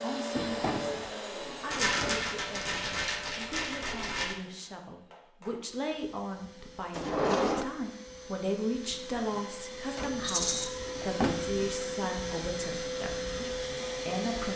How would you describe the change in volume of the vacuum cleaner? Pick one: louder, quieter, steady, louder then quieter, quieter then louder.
quieter then louder.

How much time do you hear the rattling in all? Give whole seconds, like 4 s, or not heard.
3 s.